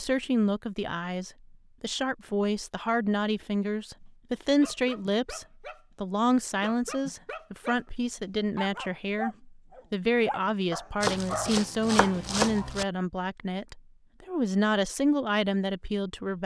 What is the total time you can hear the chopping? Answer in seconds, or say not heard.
2 s.